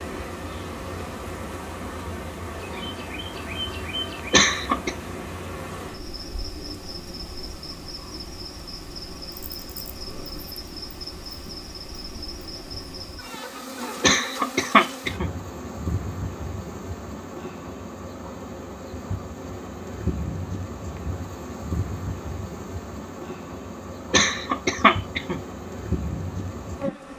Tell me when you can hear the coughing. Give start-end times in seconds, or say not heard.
4.3-4.9, 14.0-15.3, 24.1-25.4.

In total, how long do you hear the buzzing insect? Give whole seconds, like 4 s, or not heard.
27 s.